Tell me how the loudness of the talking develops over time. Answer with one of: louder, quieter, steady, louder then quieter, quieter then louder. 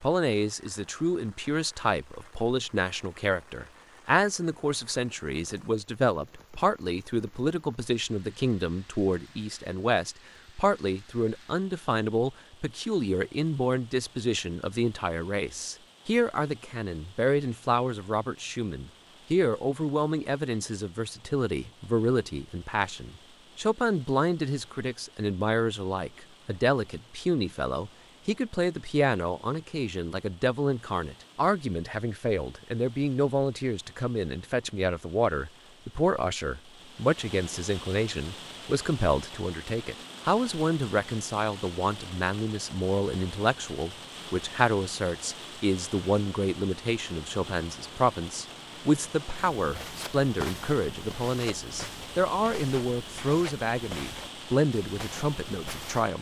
steady.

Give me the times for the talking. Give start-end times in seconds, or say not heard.
0.0-56.1.